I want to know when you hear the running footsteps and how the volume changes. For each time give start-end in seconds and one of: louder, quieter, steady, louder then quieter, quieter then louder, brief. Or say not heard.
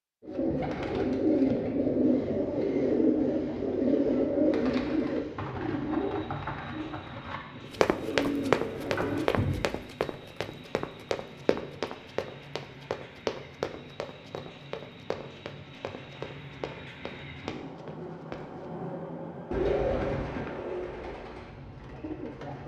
7.7-18.6 quieter.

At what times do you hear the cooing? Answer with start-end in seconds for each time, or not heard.
0.2-9.7, 19.5-22.6.